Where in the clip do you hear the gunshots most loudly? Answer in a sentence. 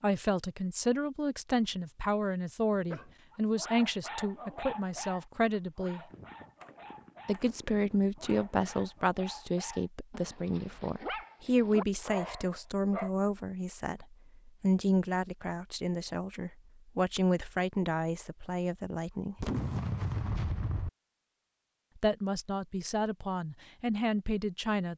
The volume of the gunshots peaks at 20 seconds.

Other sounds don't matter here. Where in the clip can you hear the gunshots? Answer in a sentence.
You can hear the gunshots from 6.1 to 9.0 s and from 19.4 to 20.9 s.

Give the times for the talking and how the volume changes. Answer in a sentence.
You can hear the talking from 0.0 to 6.0 s, at a steady volume; from 7.2 to 19.4 s, at a steady volume; and briefly from 21.9 to 24.9 s.